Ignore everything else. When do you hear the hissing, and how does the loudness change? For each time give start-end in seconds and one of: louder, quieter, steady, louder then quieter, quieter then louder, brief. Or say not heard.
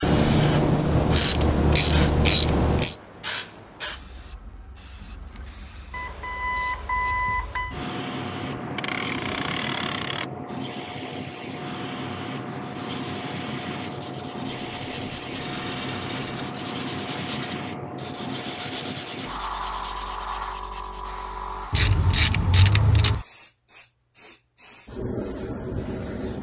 0.0-26.3 steady.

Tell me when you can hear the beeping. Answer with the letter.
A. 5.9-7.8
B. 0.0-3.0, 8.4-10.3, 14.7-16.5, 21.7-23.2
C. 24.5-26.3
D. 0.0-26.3
A.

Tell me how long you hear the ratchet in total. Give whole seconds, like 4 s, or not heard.
8 s.